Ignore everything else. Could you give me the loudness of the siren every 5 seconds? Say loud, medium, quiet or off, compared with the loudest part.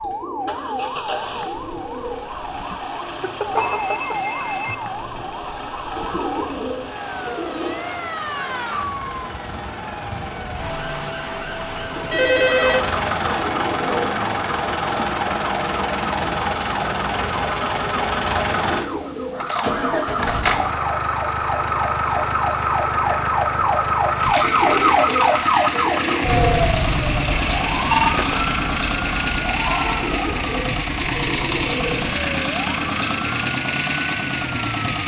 medium, medium, medium, medium, loud, loud, medium.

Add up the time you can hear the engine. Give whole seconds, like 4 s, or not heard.
35 s.